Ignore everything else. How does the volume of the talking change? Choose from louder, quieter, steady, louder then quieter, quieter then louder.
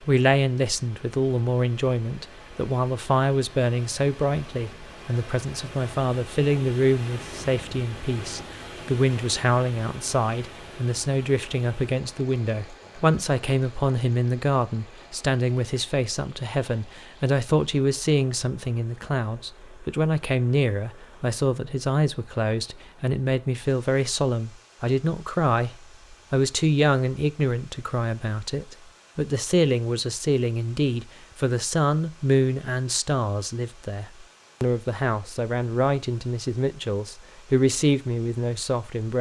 steady.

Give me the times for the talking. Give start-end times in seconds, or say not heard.
0.0-39.1.